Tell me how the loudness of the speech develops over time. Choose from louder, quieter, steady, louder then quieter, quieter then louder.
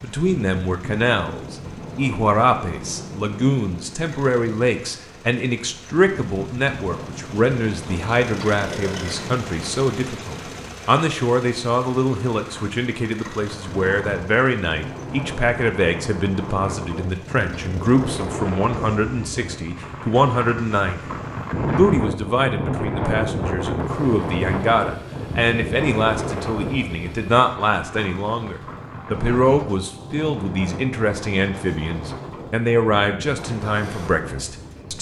steady.